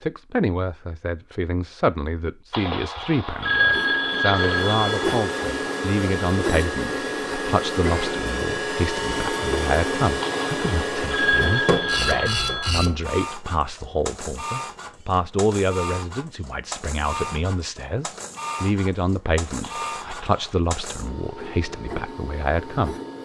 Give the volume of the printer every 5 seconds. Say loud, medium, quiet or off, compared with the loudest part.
medium, loud, loud, medium, medium.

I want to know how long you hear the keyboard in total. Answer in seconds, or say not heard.
not heard.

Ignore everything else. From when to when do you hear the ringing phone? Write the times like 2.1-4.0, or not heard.
2.5-5.2, 10.2-12.8, 19.6-20.6.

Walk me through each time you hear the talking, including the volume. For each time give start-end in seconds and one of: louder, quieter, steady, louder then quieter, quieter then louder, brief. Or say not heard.
0.0-22.9 steady.